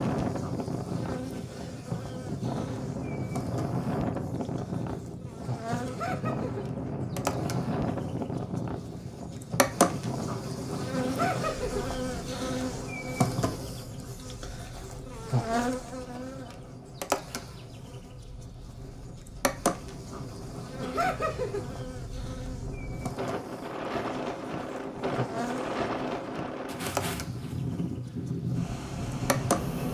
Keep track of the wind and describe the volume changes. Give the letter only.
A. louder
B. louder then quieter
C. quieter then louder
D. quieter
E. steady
C.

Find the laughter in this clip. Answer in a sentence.
The laughter can be heard from 5.8 to 6.7 s, from 11.0 to 11.8 s and from 20.8 to 21.6 s.